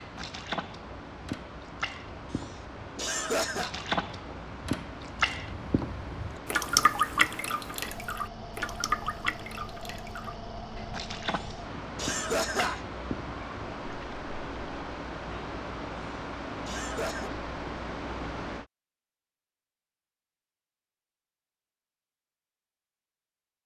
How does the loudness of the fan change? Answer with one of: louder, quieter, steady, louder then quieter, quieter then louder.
louder.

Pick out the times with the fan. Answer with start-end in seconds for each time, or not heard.
0.0-18.7.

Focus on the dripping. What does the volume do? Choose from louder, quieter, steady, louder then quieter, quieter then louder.
louder then quieter.